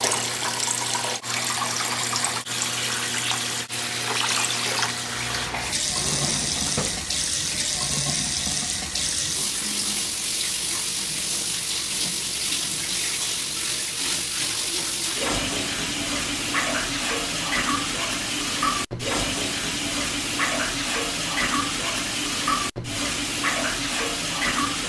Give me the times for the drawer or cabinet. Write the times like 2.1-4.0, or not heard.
5.8-7.1.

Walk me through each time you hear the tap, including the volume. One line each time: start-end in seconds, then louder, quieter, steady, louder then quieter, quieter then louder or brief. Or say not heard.
0.0-24.8 steady.